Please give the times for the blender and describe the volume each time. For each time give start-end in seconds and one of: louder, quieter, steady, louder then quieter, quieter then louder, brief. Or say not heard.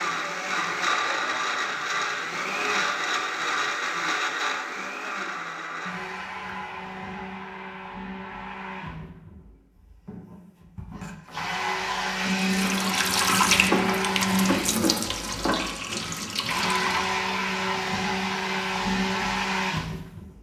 0.0-20.3 quieter then louder.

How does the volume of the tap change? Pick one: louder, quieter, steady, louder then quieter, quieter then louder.
quieter.